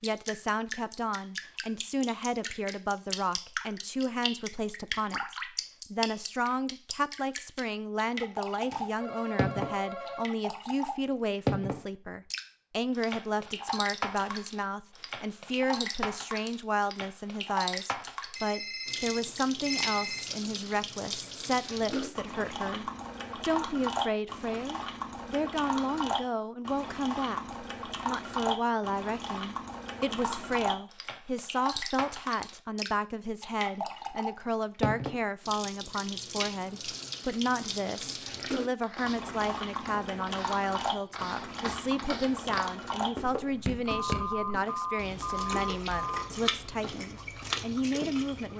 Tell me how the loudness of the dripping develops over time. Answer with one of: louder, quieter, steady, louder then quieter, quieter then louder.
steady.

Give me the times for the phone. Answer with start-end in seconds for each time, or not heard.
8.7-10.2, 18.4-20.2, 43.9-46.2.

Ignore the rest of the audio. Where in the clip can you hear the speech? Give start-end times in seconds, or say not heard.
0.0-48.5.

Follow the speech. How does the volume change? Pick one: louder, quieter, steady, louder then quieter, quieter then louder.
steady.